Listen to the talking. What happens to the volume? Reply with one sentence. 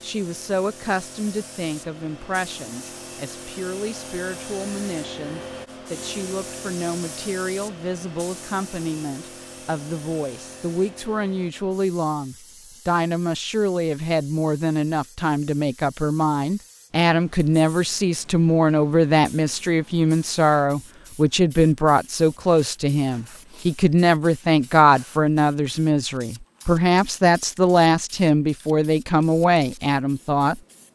The volume of the talking goes up.